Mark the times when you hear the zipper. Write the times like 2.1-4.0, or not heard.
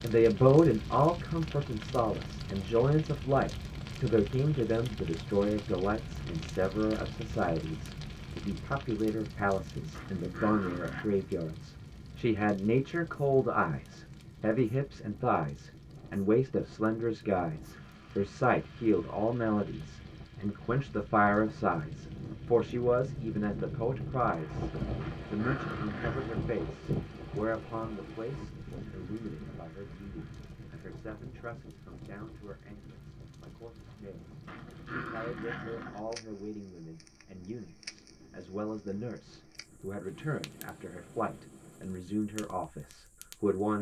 not heard.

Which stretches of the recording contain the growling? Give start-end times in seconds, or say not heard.
9.9-11.1, 25.0-26.4, 34.5-36.0.